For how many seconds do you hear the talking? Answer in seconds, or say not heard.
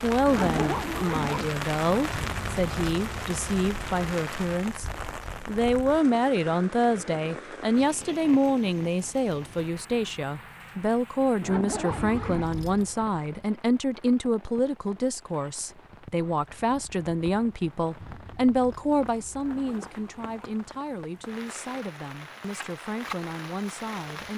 24 s.